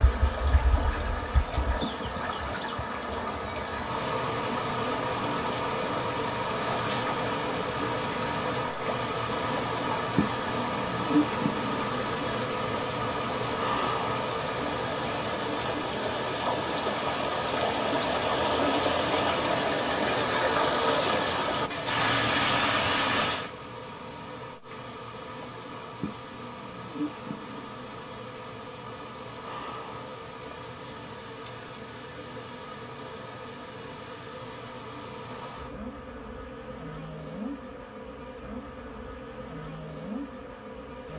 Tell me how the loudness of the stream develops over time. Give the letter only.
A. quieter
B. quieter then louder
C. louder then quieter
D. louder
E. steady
D.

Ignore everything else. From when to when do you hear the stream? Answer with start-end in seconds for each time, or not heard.
0.0-23.5.